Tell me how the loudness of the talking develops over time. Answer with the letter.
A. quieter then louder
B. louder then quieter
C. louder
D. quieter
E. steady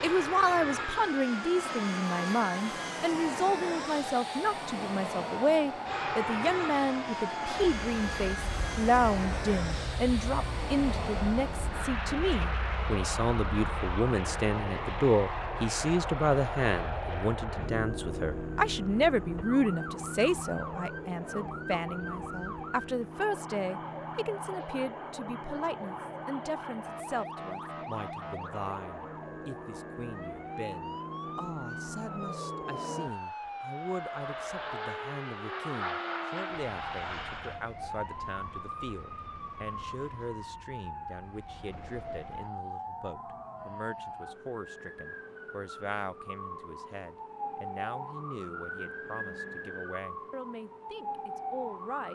D.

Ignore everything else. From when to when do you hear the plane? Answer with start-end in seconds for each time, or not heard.
0.0-37.6.